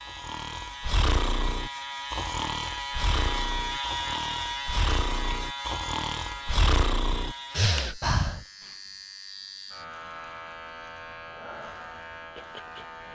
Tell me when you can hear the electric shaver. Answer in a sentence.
You can hear the electric shaver from 0.0 to 13.0 s.